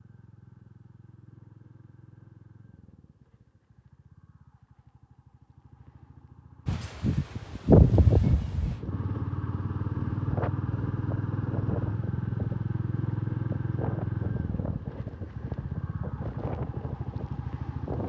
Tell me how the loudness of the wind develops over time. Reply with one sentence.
The loudness of the wind goes down.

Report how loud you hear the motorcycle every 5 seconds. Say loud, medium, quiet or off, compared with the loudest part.
quiet, medium, loud, medium.